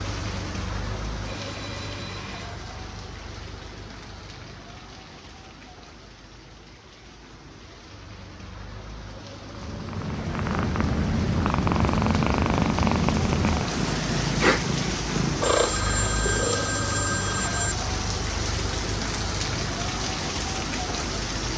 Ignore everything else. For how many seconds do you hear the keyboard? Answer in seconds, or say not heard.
not heard.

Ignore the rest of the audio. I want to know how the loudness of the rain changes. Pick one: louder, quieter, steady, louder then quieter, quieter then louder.
quieter then louder.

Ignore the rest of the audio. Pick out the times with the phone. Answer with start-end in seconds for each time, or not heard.
1.2-2.6, 15.4-17.8.